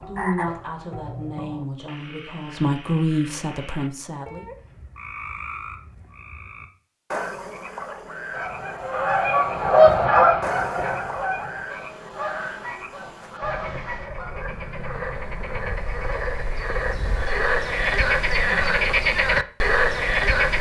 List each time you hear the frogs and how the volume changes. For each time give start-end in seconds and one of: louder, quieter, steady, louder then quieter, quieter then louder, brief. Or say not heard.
0.0-20.5 louder.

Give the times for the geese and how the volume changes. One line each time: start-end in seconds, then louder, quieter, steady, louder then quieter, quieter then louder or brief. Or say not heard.
8.3-14.3 louder then quieter.